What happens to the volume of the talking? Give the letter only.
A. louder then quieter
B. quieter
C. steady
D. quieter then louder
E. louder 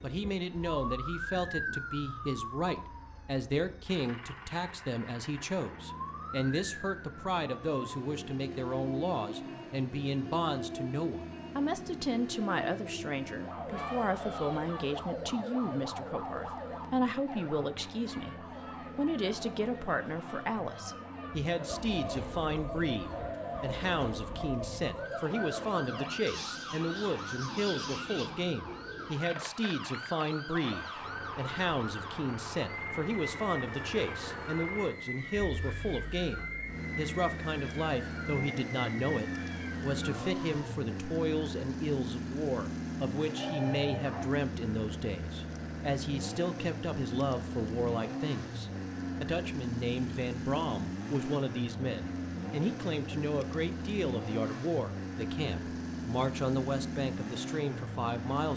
C.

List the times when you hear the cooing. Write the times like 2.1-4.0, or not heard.
21.4-29.3.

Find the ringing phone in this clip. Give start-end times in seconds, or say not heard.
43.4-44.4.